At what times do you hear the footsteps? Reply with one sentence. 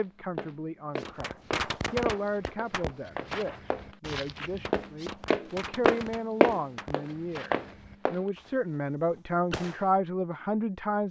The footsteps can be heard from 0.3 to 8.3 s.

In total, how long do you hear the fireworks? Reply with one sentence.
You can hear the fireworks for 9 seconds altogether.